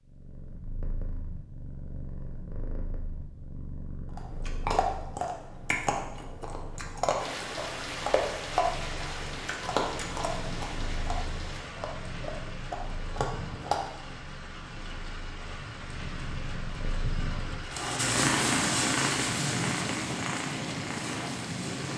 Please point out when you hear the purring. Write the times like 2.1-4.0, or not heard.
0.0-21.9.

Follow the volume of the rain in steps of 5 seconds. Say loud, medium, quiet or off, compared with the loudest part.
off, loud, medium, loud, loud.